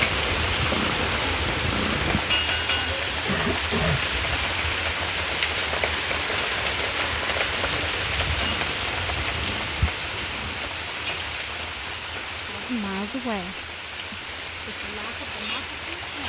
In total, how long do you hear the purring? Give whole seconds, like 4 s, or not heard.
6 s.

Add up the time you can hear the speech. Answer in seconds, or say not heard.
4 s.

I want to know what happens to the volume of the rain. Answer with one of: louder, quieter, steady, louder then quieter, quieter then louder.
quieter.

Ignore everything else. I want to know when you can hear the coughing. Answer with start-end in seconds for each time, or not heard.
3.2-4.1.